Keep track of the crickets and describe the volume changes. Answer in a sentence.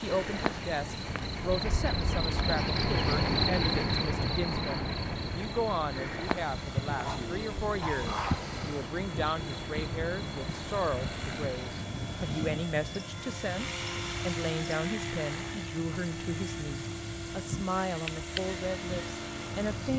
The loudness of the crickets goes down.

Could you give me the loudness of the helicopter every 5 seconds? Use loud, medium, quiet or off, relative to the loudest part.
medium, loud, loud, loud.